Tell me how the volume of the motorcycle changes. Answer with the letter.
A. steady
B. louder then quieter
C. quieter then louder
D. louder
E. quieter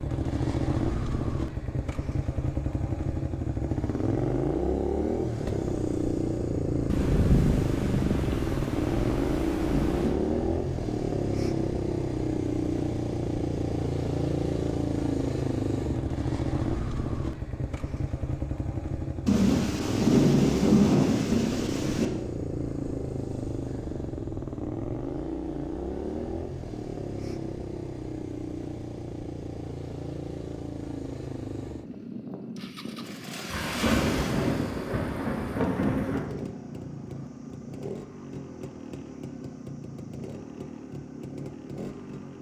E.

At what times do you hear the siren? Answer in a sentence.
The siren can't be heard in this clip.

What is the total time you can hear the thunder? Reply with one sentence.
The thunder can be heard for 9 seconds in total.